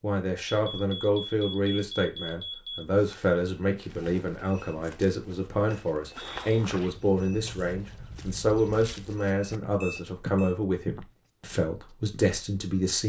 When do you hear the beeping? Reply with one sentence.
The beeping can be heard from 0.5 to 2.8 s, from 5.7 to 6.5 s and from 9.8 to 10.6 s.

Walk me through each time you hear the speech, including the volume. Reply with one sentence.
You can hear the speech from 0.0 to 13.0 s, at a steady volume.